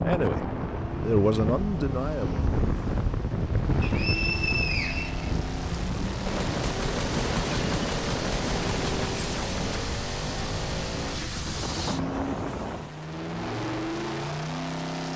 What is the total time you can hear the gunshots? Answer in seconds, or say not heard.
4 s.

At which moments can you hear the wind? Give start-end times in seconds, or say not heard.
0.0-12.9.